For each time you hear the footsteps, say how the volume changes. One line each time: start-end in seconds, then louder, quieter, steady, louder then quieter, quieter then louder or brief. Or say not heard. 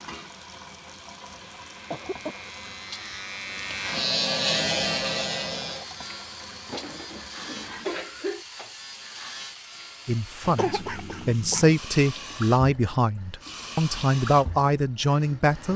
not heard.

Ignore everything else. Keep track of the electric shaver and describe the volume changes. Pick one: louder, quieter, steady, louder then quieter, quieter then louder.
louder then quieter.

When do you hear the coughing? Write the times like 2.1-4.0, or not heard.
1.9-2.5, 6.7-8.4, 10.6-11.8.